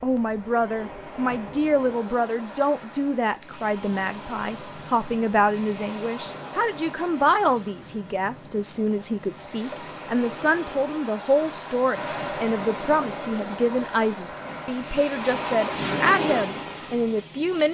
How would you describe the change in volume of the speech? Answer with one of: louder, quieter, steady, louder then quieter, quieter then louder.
steady.